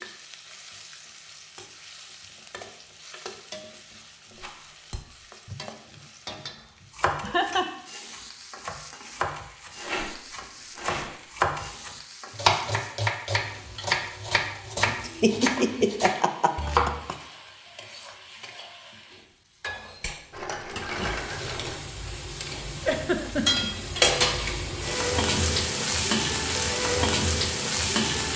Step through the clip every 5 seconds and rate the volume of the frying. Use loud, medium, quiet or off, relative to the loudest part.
quiet, quiet, quiet, quiet, loud, loud.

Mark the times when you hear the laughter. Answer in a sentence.
The laughter can be heard from 5.5 to 6.0 s, from 7.2 to 7.7 s, from 15.1 to 17.1 s and from 22.9 to 23.7 s.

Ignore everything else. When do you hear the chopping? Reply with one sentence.
You can hear the chopping from 6.9 to 17.0 s.